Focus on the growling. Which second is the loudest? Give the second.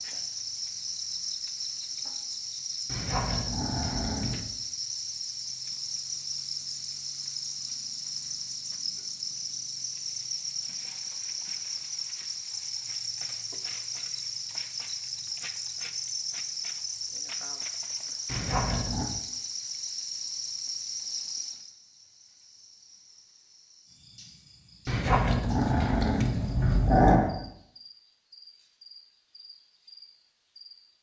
27 s.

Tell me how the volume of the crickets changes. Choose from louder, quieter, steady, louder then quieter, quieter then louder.
quieter.